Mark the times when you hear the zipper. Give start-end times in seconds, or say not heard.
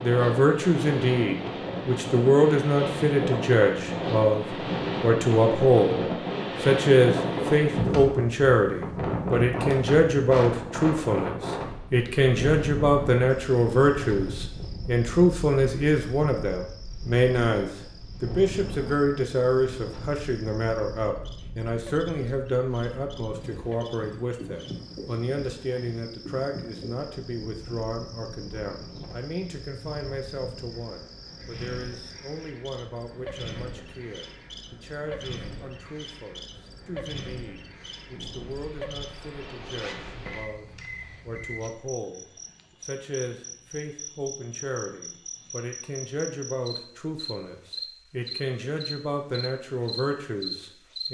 39.7-41.2.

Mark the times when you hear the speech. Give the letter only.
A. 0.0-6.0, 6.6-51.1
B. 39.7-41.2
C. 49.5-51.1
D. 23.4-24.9
A.